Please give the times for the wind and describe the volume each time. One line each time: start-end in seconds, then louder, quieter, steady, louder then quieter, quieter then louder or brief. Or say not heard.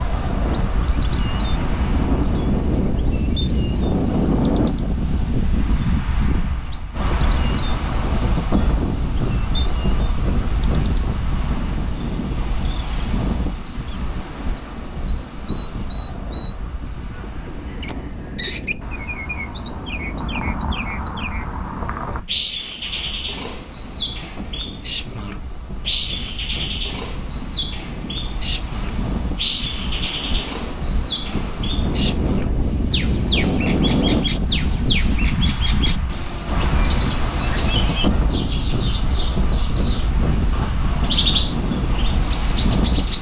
0.0-43.1 quieter then louder.